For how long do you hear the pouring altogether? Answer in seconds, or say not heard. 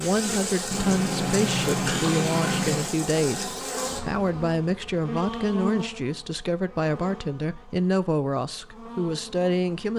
2 s.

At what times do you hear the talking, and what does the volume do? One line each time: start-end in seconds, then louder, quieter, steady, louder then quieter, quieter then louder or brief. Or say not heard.
0.0-9.9 steady.